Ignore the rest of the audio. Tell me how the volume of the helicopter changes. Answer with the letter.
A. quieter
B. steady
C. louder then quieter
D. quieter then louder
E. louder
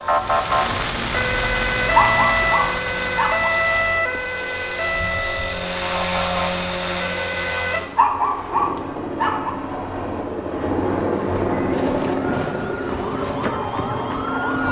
E.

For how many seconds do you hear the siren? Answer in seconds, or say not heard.
11 s.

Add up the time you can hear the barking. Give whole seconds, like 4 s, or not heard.
3 s.